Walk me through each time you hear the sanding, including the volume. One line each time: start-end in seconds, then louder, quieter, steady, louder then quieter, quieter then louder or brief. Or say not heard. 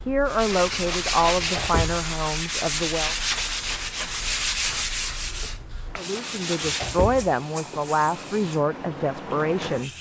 0.2-7.0 quieter.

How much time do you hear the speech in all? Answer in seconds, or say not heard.
7 s.